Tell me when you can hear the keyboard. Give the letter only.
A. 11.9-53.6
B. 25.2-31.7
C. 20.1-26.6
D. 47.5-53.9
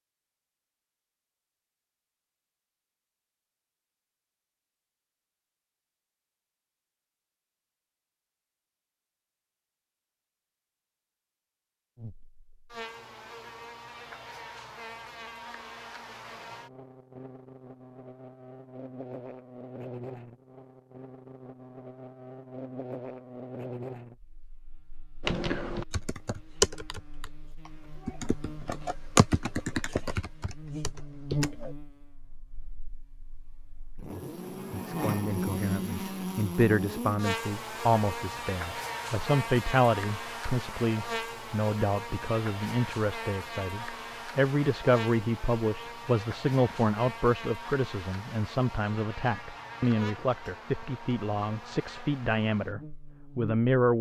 B.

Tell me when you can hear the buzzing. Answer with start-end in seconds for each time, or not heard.
11.9-53.6.